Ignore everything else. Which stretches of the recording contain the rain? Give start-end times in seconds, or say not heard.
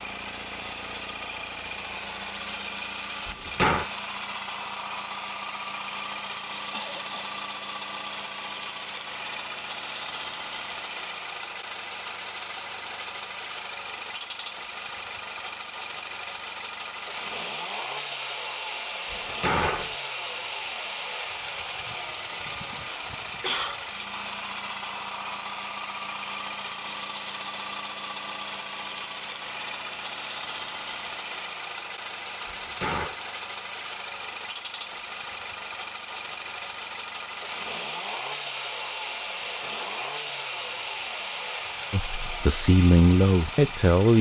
not heard.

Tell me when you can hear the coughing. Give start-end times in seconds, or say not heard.
6.7-7.3, 22.9-23.9.